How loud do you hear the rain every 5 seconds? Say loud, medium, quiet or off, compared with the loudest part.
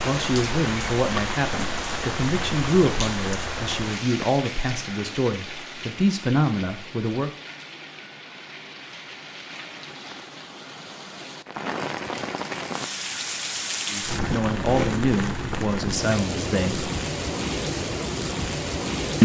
loud, medium, loud, loud.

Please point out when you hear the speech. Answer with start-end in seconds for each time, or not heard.
0.1-7.3, 13.9-16.9.